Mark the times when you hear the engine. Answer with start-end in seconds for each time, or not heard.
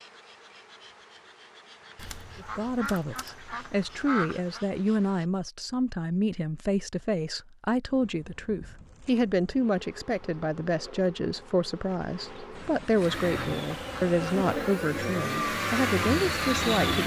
12.9-17.0.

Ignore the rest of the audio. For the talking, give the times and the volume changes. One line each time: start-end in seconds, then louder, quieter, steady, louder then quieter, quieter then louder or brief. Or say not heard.
2.4-17.0 steady.